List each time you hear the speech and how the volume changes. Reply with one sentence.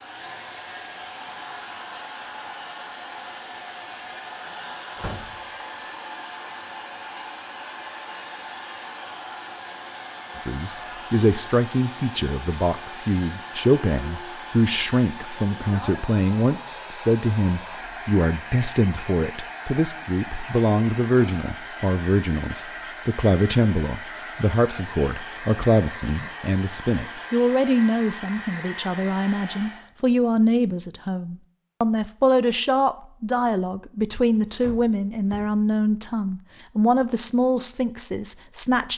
You can hear the speech from 10.3 to 38.9 s, at a steady volume.